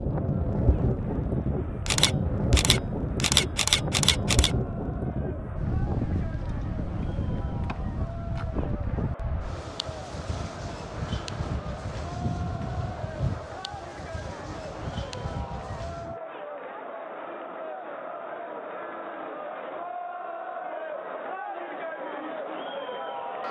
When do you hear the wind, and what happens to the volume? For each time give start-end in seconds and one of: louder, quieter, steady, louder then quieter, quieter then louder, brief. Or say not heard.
0.0-16.2 quieter.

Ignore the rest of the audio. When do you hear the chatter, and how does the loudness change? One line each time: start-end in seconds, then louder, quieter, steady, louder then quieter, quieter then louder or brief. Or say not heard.
0.0-23.4 louder.